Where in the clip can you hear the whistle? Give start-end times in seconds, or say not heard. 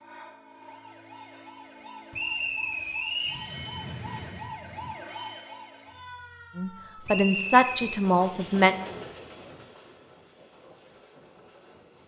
2.1-3.4, 7.0-8.0.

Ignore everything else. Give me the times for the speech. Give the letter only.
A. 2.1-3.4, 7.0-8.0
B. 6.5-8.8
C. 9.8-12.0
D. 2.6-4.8
B.